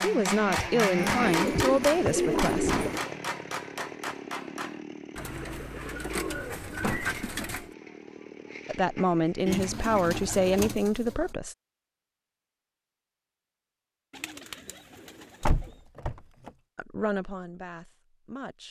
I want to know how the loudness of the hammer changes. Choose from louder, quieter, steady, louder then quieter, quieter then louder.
quieter.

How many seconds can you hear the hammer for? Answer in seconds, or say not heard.
5 s.